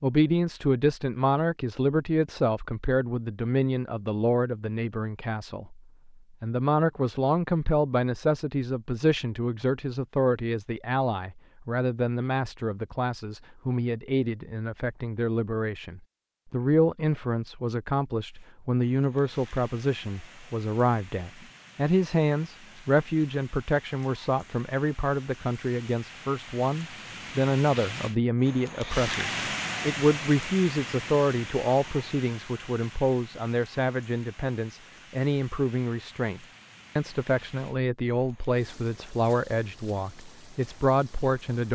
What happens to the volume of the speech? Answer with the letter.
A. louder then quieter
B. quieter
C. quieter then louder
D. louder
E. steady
E.